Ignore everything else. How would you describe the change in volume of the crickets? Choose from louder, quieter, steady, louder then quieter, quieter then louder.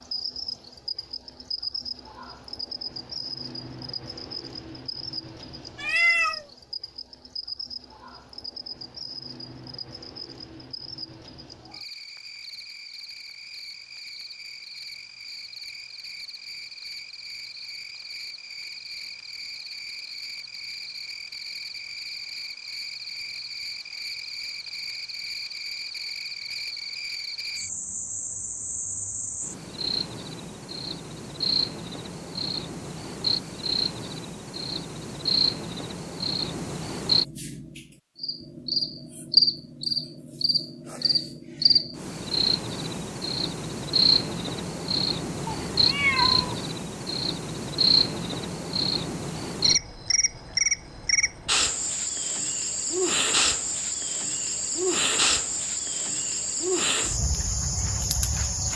louder.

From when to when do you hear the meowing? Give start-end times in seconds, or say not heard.
5.8-6.5, 45.5-46.5.